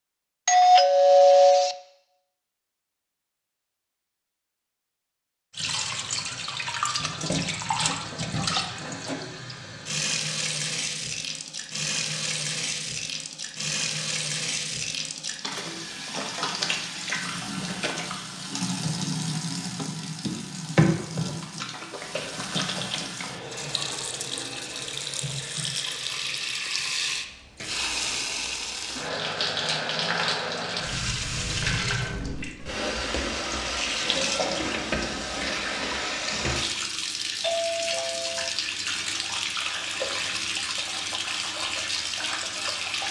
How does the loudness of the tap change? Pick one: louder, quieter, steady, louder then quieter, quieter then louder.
steady.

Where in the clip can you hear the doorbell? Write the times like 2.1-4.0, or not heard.
0.5-1.8, 37.4-38.5.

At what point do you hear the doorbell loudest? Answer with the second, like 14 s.
1 s.